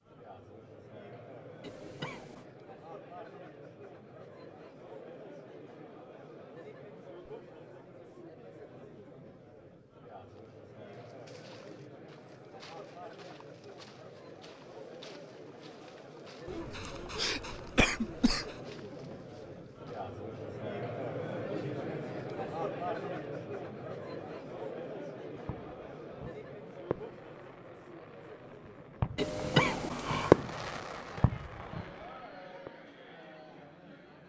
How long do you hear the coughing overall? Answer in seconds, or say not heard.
4 s.